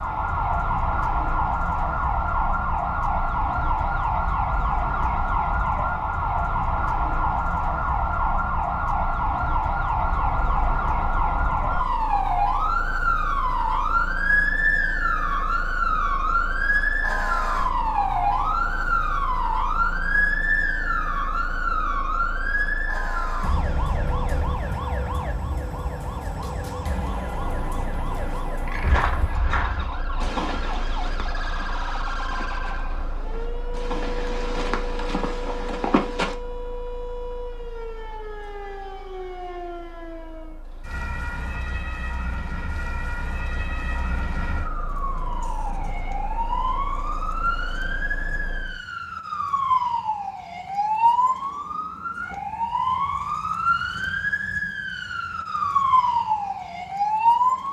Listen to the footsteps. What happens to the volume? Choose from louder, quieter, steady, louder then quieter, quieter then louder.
quieter then louder.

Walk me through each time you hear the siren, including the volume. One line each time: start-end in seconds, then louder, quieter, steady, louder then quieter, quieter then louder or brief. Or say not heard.
0.0-57.6 quieter then louder.